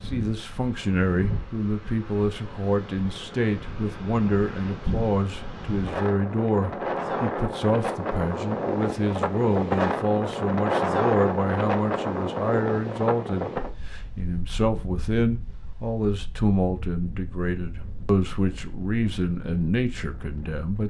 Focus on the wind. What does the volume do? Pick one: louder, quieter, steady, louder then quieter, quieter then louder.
louder then quieter.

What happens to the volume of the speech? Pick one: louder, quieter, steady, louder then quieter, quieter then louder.
steady.